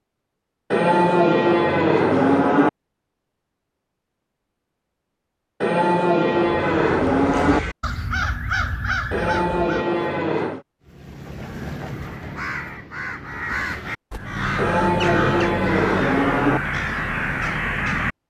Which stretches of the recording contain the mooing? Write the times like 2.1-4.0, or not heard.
0.7-2.7, 5.6-7.6, 9.1-10.7, 14.6-16.6.